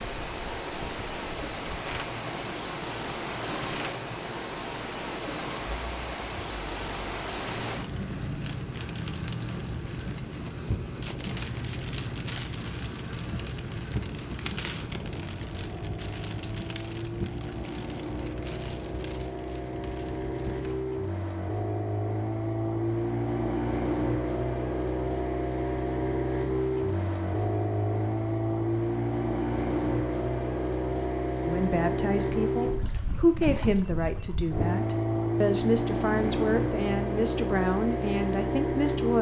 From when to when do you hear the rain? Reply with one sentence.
The rain can be heard from 0.0 to 20.8 s.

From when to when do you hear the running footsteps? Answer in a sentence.
The running footsteps can't be heard in this clip.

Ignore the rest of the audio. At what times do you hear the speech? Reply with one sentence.
The speech can be heard from 31.4 to 39.1 s.